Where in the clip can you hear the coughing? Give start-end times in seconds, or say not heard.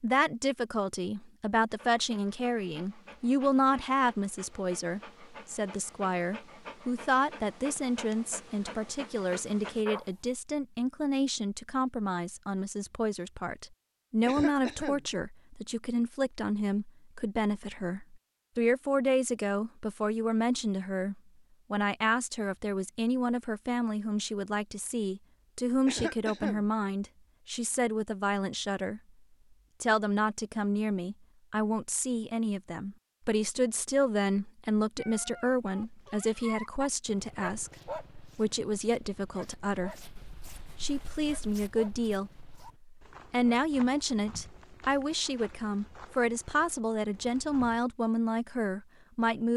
14.2-15.1, 25.9-26.6.